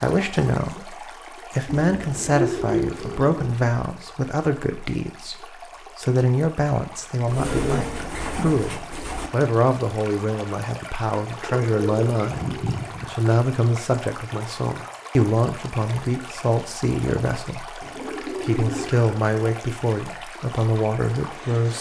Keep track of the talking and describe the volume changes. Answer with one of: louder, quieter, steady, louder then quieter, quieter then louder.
steady.